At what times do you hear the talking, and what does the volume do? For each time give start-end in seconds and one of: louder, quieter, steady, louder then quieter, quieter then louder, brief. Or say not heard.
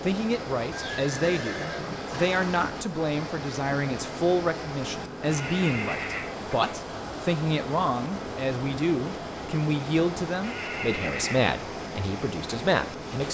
0.0-13.2 steady.